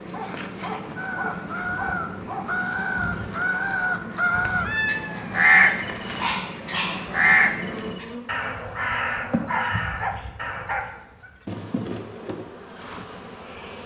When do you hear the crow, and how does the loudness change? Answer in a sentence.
You can hear the crow from 0.9 to 10.8 s, getting louder then quieter.